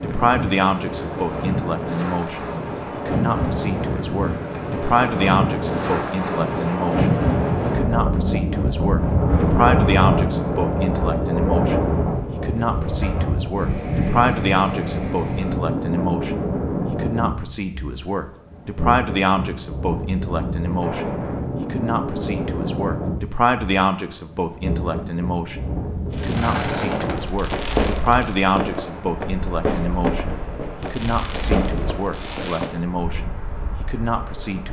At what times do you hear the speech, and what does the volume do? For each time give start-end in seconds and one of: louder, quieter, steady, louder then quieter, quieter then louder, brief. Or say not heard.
0.0-34.6 steady.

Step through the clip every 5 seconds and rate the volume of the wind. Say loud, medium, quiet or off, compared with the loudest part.
medium, loud, loud, medium, medium, medium, quiet.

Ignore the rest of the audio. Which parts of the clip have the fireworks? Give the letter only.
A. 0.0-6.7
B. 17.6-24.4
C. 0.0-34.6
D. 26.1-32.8
D.